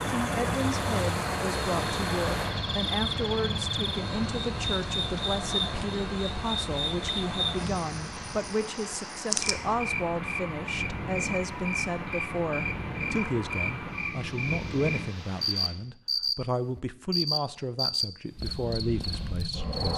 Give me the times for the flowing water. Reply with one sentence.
You can hear the flowing water from 0.0 to 15.8 s.